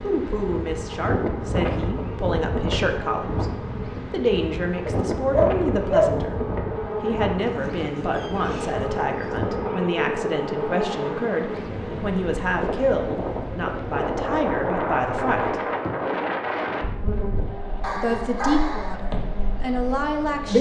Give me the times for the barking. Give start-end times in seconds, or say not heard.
4.8-6.1, 17.8-19.0.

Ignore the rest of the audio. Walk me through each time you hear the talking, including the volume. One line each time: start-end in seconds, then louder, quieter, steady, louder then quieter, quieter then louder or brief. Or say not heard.
0.0-15.6 steady
17.9-20.5 brief.